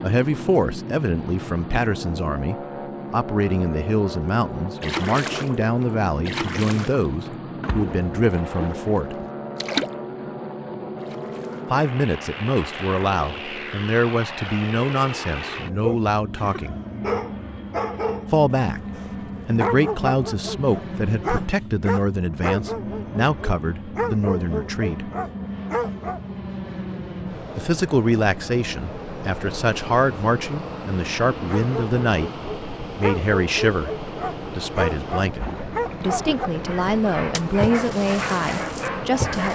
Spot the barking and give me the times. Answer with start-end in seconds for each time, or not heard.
15.6-26.2, 31.4-39.4.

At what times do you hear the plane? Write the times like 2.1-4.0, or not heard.
0.0-39.4.